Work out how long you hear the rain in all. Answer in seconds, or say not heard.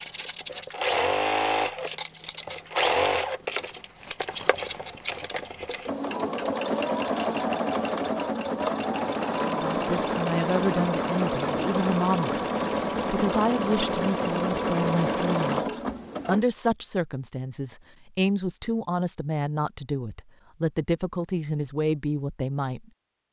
not heard.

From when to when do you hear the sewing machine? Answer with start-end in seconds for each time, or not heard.
0.0-16.4.